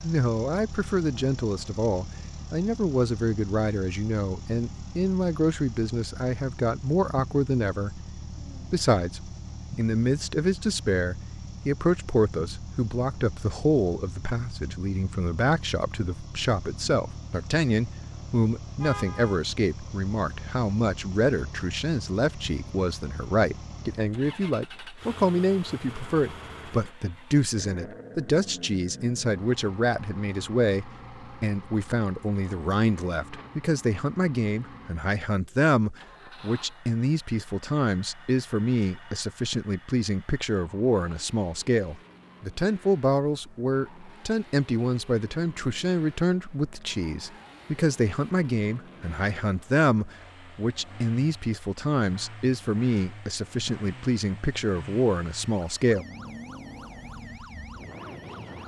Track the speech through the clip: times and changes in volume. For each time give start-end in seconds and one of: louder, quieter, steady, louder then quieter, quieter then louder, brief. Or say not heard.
0.0-56.0 steady.